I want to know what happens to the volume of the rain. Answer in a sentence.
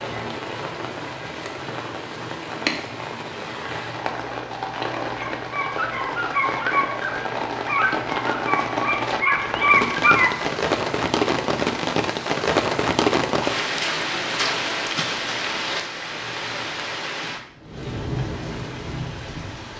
The loudness of the rain goes up, then down.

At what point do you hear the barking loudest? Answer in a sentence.
The volume of the barking peaks at 10 seconds.